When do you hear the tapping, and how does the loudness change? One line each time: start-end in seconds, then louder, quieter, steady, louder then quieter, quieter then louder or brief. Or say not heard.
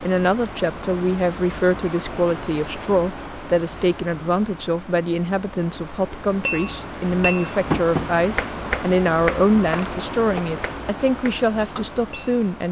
6.5-12.3 quieter.